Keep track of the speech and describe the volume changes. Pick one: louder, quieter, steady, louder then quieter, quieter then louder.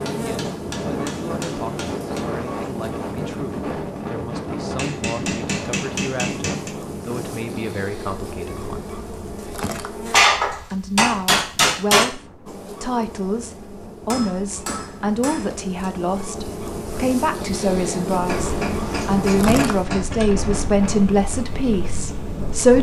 louder.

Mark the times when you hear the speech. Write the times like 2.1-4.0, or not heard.
0.0-8.9, 10.7-22.7.